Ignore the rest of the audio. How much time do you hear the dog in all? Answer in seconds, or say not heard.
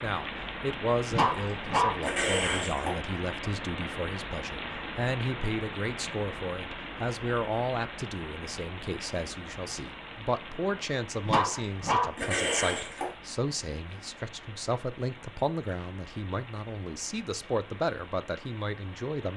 4 s.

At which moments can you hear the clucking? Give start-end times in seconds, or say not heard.
not heard.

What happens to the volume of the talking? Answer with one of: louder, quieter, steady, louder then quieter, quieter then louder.
steady.